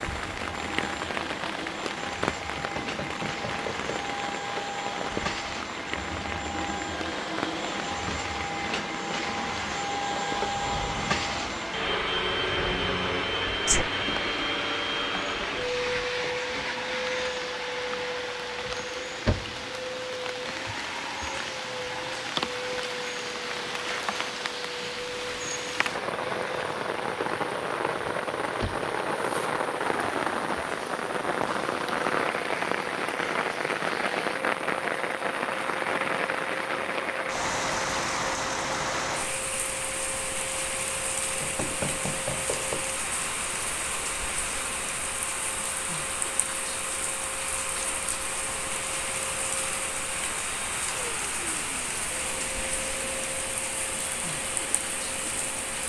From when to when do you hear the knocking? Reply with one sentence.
The knocking can be heard from 2.5 to 4.1 s and from 41.4 to 42.9 s.